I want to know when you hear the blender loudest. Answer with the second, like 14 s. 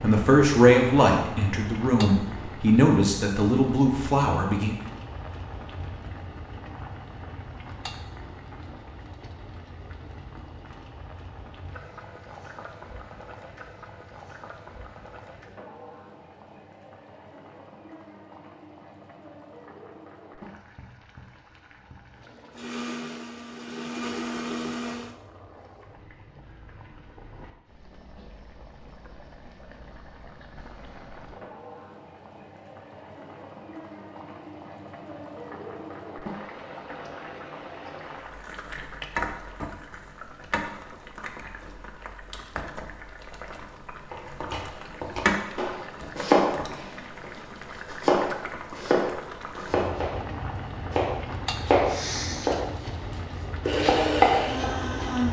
54 s.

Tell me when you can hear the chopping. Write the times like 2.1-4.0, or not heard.
44.1-50.1, 50.9-55.1.